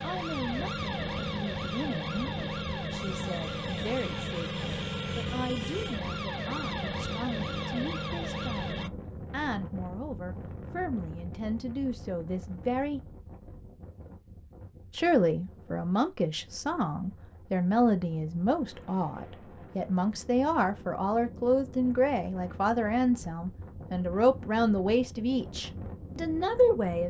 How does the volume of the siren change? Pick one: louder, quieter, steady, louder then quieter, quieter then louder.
steady.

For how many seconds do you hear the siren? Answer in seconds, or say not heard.
9 s.